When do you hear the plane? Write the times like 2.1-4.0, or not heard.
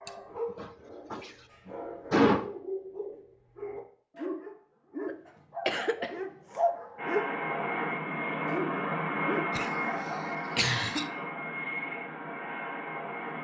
7.0-13.3.